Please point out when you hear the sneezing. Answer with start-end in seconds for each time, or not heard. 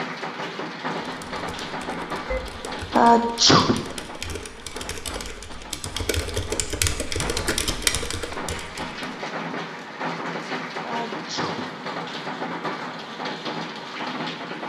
2.9-3.8, 10.8-11.7.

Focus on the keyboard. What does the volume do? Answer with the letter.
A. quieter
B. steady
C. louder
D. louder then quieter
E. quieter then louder
C.